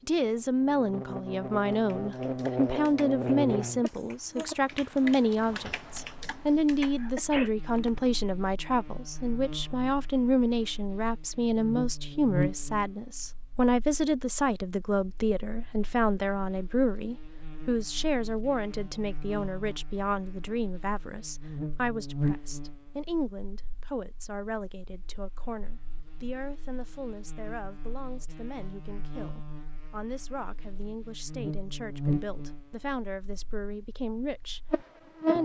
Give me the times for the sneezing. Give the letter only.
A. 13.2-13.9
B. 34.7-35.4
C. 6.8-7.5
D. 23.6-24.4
C.